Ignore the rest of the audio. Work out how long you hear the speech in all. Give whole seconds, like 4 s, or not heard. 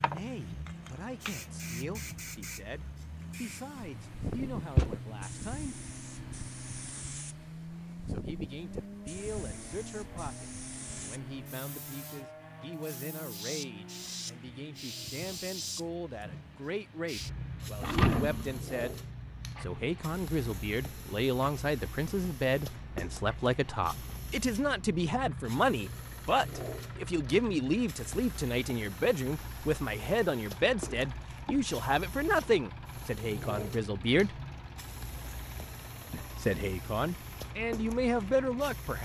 34 s.